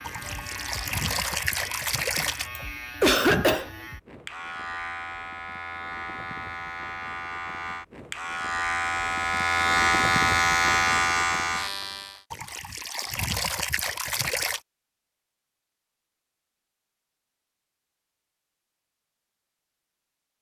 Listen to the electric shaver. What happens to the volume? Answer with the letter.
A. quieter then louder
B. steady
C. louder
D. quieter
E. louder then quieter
C.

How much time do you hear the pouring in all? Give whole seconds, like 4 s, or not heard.
5 s.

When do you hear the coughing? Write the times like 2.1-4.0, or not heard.
2.5-3.7.